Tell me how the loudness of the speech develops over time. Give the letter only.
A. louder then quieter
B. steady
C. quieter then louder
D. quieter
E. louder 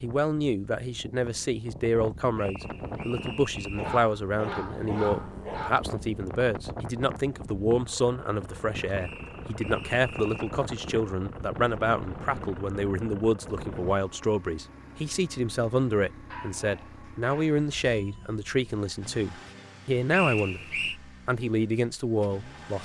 B.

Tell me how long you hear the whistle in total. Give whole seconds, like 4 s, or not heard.
4 s.